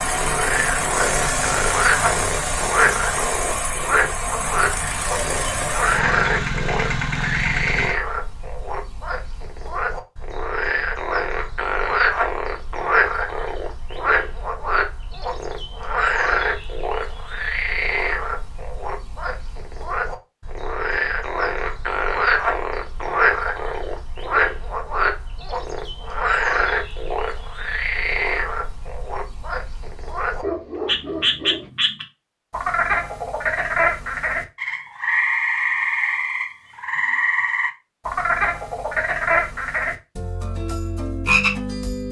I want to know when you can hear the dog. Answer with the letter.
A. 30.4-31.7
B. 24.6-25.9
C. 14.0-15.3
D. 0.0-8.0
A.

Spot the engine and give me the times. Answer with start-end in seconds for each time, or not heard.
0.0-8.0.